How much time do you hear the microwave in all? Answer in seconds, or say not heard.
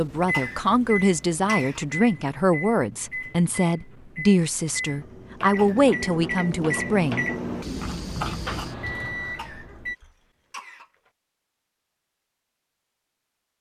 10 s.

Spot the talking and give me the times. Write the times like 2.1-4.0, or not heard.
0.0-7.2.